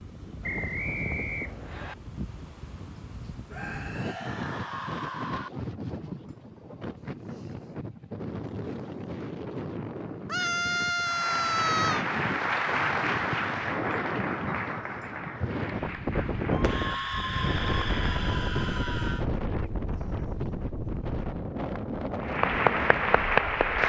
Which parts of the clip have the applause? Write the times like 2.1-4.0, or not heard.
11.0-18.2, 22.2-23.8.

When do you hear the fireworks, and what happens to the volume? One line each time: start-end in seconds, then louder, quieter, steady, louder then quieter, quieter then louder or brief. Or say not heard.
not heard.